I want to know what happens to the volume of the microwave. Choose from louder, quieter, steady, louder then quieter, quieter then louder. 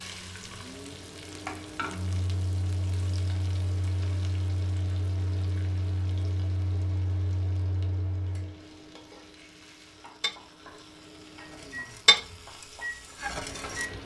quieter then louder.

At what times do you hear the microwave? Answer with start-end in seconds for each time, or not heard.
0.0-13.9.